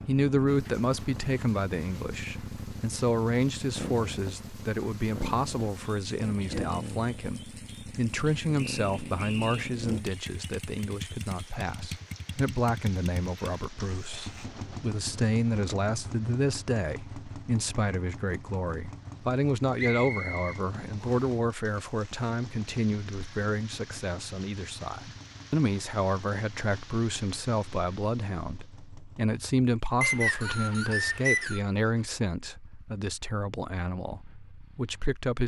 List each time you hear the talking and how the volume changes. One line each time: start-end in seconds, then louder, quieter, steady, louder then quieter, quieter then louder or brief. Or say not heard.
0.0-35.4 steady.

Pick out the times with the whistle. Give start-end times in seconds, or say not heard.
8.6-9.7, 19.8-21.3, 30.0-31.6.